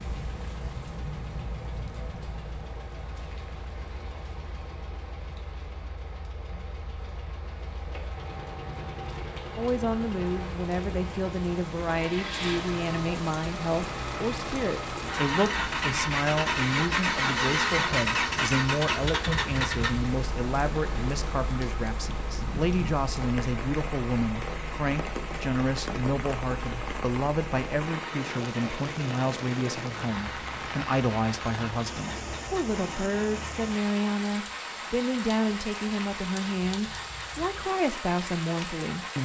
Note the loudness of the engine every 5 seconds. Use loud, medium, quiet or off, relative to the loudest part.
quiet, quiet, medium, loud, quiet, quiet, quiet, quiet.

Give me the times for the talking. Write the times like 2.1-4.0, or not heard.
9.6-39.2.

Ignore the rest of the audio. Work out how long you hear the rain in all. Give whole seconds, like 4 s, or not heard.
39 s.